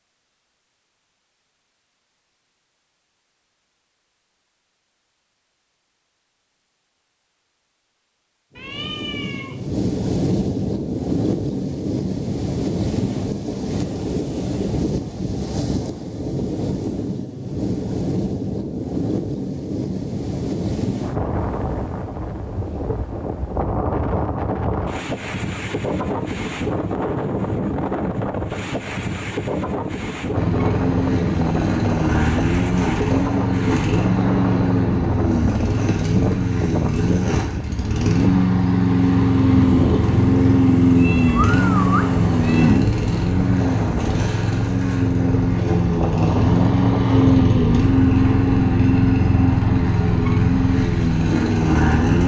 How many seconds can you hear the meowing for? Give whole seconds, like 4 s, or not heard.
3 s.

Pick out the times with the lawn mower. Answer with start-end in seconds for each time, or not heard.
30.3-52.2.